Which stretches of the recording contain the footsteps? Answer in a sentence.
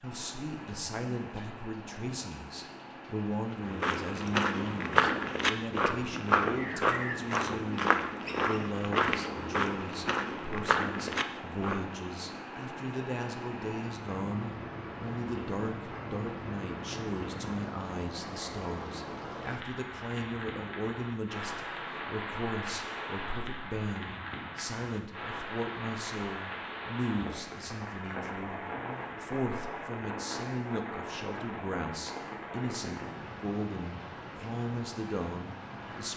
You can hear the footsteps from 3.5 to 11.8 s.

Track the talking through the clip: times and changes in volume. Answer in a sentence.
You can hear the talking from 0.0 to 36.1 s, at a steady volume.